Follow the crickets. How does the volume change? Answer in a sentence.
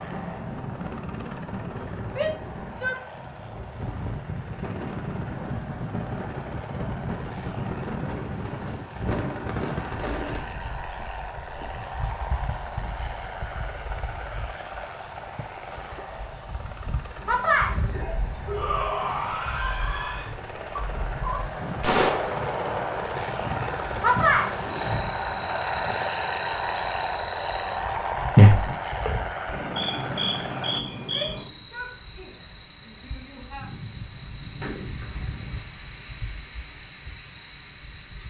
The loudness of the crickets goes up, then down.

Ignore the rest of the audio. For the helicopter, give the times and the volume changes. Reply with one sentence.
The helicopter can be heard from 0.0 to 30.9 s, getting louder.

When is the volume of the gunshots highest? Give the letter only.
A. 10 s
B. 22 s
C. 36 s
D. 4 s
B.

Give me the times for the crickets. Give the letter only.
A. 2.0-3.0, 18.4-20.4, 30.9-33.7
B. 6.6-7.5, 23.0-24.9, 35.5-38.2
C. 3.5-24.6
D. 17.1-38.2
D.